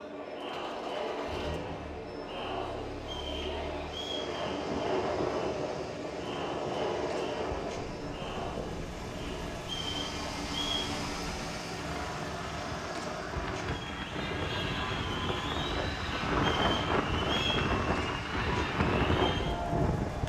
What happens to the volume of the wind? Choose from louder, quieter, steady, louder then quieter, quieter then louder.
quieter then louder.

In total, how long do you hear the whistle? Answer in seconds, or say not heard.
4 s.